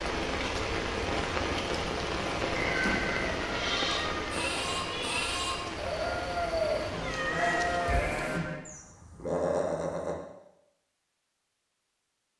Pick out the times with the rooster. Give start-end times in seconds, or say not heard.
2.5-4.5.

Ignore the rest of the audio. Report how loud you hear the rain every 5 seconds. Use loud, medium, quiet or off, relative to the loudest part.
loud, medium, off.